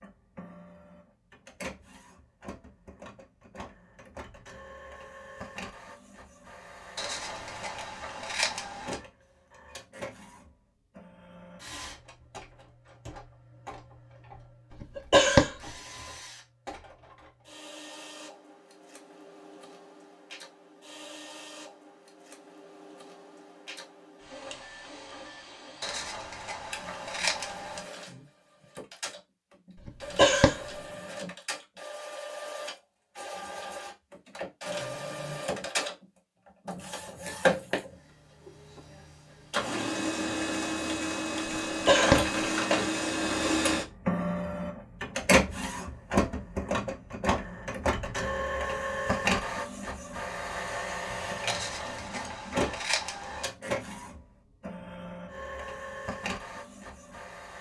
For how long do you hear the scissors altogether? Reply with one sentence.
The scissors can be heard for 6 seconds in total.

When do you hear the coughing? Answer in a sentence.
You can hear the coughing from 14.7 to 15.8 s, from 29.8 to 30.8 s and from 41.5 to 42.3 s.